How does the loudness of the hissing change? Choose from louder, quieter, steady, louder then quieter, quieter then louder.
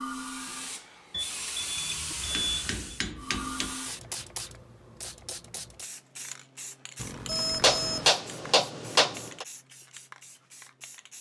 quieter.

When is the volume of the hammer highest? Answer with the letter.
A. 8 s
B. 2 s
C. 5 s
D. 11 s
A.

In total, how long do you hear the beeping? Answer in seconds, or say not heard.
3 s.